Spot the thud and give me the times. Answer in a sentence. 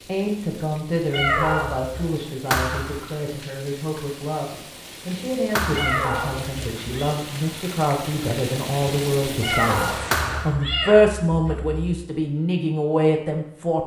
The thud can be heard from 2.5 to 3.1 s, from 5.5 to 6.0 s and from 10.1 to 10.7 s.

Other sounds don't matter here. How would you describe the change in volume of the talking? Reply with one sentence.
The volume of the talking goes up.